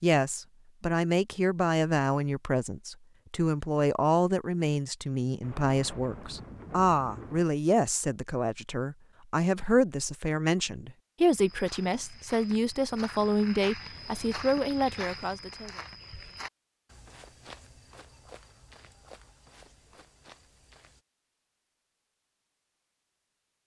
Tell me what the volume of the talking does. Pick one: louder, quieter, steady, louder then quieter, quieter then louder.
steady.